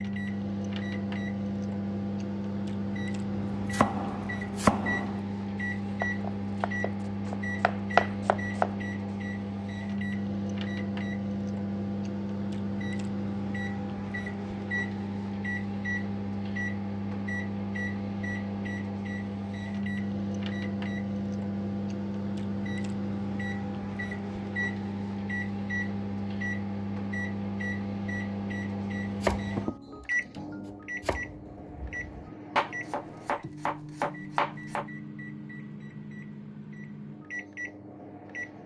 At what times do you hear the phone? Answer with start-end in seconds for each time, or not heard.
not heard.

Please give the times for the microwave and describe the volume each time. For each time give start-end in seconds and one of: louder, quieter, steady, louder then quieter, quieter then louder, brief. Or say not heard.
0.0-38.6 quieter.